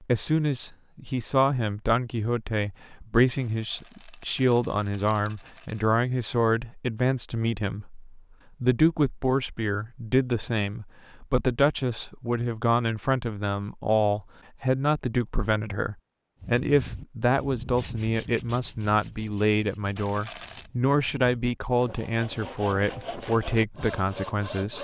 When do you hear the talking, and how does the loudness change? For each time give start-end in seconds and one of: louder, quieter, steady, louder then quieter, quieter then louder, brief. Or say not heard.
0.0-24.7 steady.